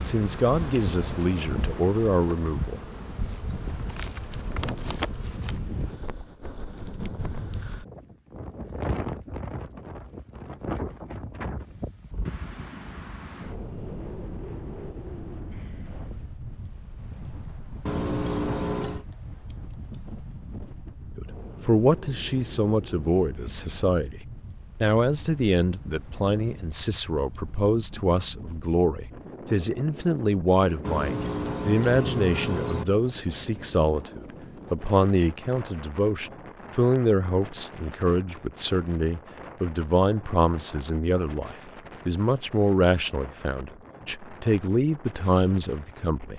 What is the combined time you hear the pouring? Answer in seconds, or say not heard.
3 s.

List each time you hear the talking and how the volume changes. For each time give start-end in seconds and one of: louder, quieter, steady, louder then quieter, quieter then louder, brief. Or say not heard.
0.0-2.8 brief
21.1-46.3 steady.